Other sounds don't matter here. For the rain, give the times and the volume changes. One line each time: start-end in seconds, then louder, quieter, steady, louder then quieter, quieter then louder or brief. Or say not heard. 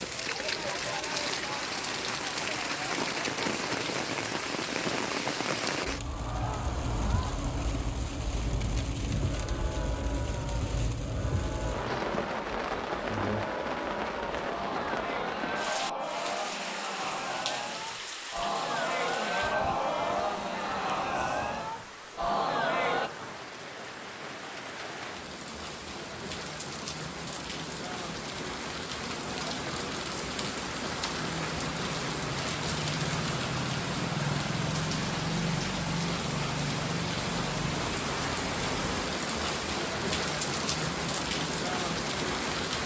0.0-42.8 quieter then louder.